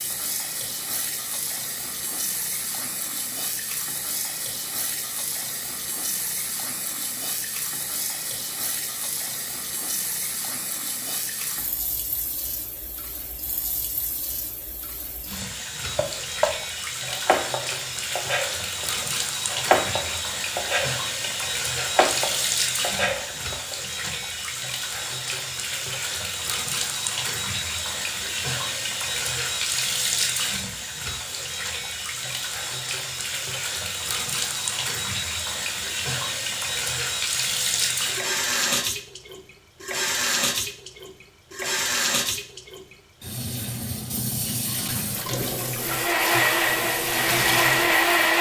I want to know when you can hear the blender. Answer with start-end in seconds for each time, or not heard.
45.8-48.3.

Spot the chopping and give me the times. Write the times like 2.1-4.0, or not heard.
15.9-24.1.